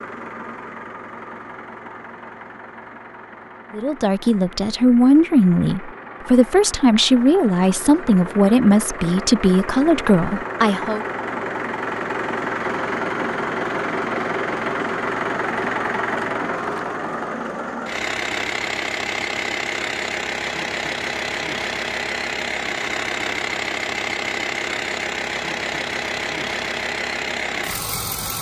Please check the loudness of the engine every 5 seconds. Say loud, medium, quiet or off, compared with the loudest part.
quiet, medium, loud, loud, loud, loud.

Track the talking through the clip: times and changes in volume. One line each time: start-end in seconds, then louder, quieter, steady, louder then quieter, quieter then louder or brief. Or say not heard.
3.7-11.1 steady.